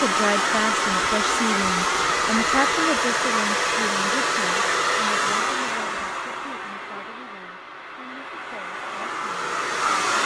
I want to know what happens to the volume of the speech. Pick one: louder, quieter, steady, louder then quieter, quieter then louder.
quieter.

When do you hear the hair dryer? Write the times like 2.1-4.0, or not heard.
0.0-10.2.